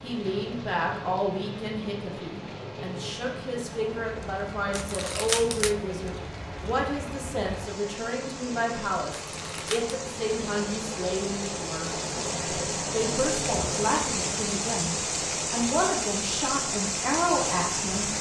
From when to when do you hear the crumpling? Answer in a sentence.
You can hear the crumpling from 4.7 to 5.8 s and from 9.2 to 10.0 s.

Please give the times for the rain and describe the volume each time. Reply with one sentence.
You can hear the rain from 0.0 to 18.1 s, getting louder.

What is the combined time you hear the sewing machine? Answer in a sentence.
You can hear the sewing machine for 18 seconds altogether.